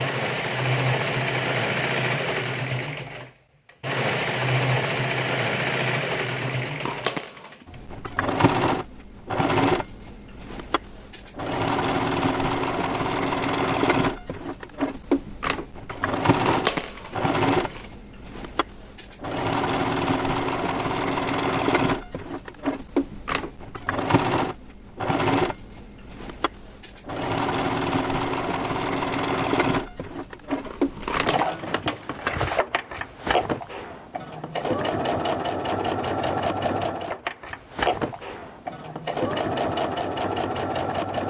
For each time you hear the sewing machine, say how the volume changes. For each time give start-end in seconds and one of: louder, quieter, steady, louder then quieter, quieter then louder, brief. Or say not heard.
0.0-41.2 steady.